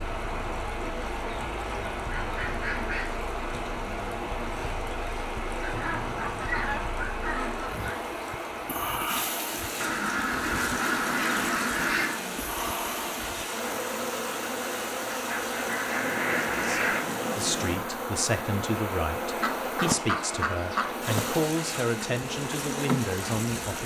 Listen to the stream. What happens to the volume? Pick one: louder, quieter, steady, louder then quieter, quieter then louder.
steady.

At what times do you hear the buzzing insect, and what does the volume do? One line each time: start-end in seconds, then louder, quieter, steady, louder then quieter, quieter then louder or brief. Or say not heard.
0.0-23.8 louder.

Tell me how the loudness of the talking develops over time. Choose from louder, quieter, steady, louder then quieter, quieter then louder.
steady.